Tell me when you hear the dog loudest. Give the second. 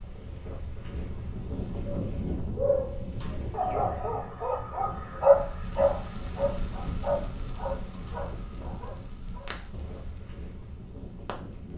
5 s.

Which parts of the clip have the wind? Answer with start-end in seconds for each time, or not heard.
0.0-11.7.